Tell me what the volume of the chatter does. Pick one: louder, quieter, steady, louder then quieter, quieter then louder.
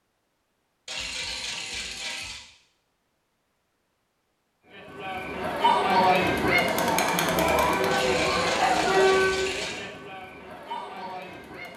quieter.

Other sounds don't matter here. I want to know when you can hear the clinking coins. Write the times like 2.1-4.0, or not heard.
0.8-2.4, 7.9-9.8.